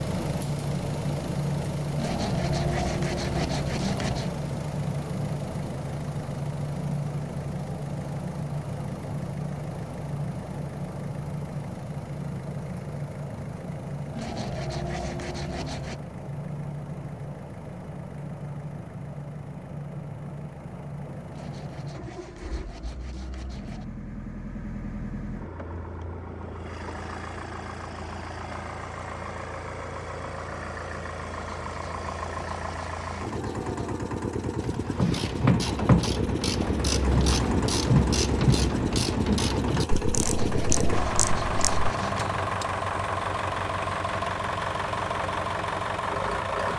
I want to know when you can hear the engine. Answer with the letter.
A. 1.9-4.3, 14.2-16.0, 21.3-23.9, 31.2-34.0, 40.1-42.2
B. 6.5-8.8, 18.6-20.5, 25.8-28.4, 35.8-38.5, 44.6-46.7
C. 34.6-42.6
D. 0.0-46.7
D.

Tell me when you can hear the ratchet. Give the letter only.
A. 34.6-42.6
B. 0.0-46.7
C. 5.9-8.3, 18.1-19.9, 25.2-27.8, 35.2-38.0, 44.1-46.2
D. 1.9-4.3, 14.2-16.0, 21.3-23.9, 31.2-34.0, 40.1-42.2
A.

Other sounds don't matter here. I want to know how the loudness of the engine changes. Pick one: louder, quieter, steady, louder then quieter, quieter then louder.
quieter then louder.